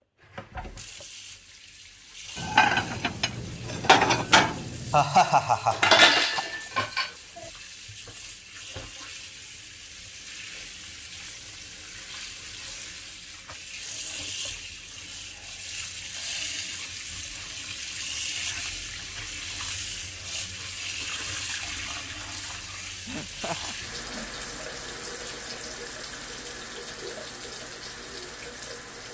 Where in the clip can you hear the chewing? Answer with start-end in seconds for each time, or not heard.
not heard.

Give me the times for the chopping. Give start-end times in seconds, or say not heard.
not heard.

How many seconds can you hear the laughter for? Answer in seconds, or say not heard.
3 s.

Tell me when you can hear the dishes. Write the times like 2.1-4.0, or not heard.
2.4-7.5.